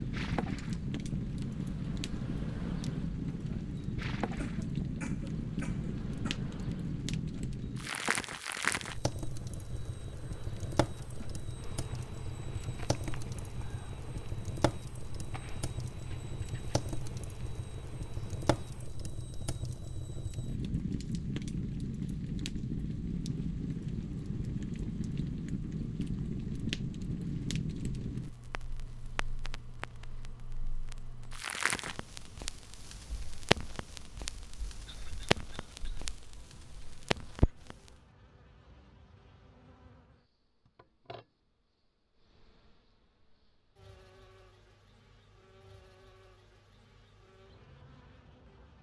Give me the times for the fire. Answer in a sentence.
You can hear the fire from 0.0 to 37.9 s.